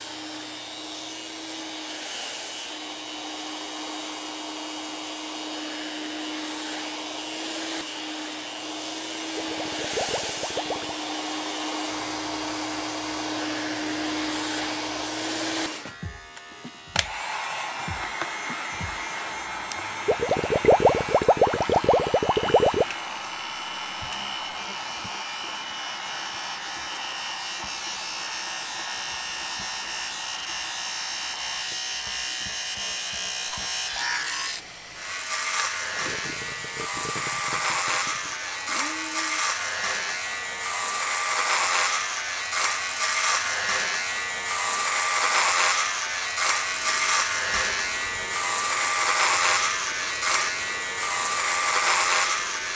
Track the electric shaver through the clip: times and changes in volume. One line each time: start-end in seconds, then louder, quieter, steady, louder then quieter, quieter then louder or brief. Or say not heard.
0.0-52.7 louder.